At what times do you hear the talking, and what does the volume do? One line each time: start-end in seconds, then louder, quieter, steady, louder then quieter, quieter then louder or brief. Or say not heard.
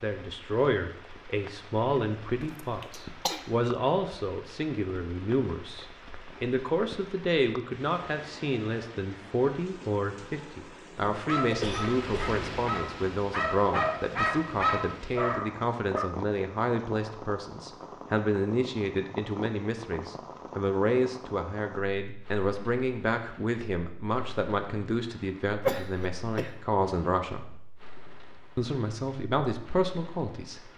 0.0-27.4 steady
28.6-30.6 brief.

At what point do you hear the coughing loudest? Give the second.
26 s.